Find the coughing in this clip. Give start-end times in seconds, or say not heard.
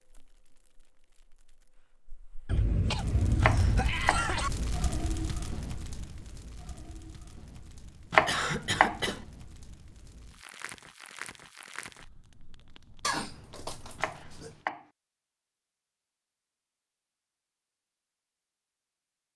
2.5-4.5, 8.2-9.2, 13.0-14.6.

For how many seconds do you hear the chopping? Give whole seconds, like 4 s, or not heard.
3 s.